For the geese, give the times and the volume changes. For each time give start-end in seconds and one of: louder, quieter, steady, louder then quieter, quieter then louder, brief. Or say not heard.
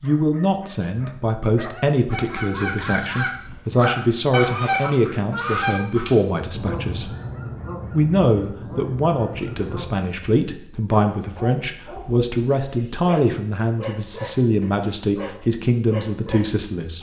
2.1-9.9 quieter.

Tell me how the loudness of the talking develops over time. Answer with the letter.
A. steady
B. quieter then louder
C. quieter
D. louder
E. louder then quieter
A.